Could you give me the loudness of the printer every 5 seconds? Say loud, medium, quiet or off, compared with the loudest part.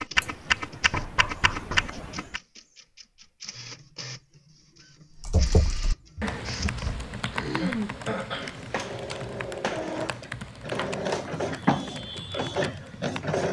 quiet, medium, loud.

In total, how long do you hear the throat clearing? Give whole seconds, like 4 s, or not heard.
3 s.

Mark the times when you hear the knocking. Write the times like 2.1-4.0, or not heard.
0.9-1.9, 5.3-7.1, 10.8-11.9.